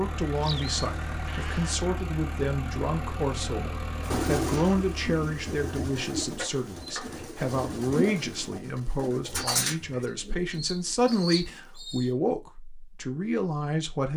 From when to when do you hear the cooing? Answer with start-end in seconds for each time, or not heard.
4.0-12.1.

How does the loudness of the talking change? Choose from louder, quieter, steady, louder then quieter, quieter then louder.
steady.